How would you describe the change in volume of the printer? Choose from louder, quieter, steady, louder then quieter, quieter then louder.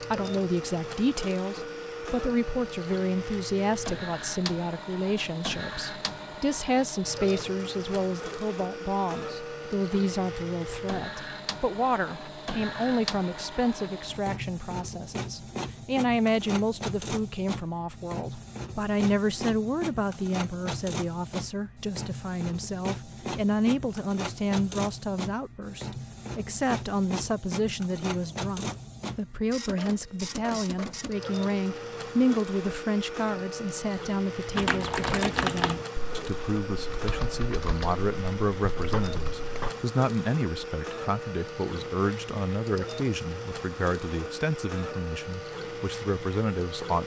steady.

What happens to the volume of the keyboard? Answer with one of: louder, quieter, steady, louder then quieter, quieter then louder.
quieter then louder.